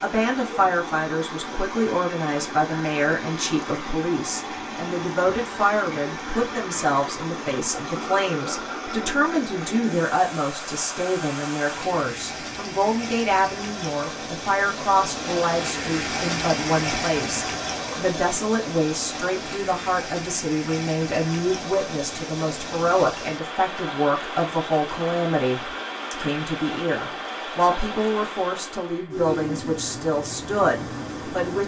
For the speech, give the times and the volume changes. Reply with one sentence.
The speech can be heard from 0.0 to 31.6 s, at a steady volume.